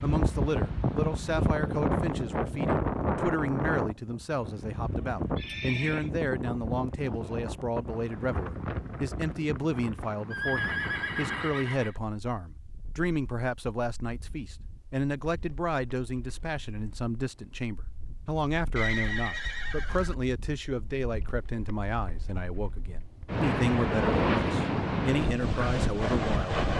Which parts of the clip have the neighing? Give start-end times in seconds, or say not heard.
5.3-6.1, 10.3-12.0, 18.8-20.1.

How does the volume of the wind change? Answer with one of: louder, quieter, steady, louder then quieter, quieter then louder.
quieter then louder.